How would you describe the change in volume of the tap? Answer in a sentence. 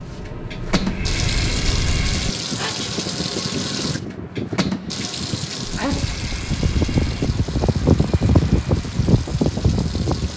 The loudness of the tap goes down.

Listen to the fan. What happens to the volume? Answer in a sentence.
The loudness of the fan goes up.